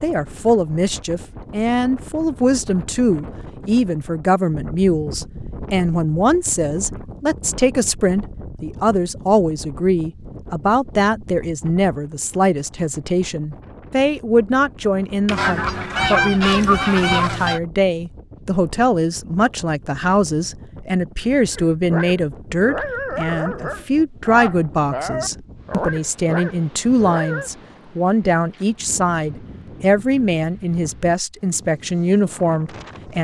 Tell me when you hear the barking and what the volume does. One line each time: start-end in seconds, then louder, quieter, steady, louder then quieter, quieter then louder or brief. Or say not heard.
21.5-27.5 steady.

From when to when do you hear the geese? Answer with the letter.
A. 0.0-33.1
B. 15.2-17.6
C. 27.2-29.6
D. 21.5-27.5
B.